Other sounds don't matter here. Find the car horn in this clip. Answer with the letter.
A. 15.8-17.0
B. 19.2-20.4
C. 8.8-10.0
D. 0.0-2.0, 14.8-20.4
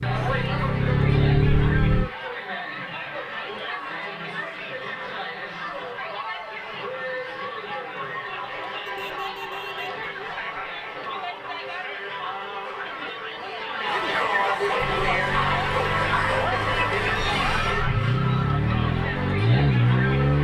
C.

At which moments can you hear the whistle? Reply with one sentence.
You can't hear the whistle here.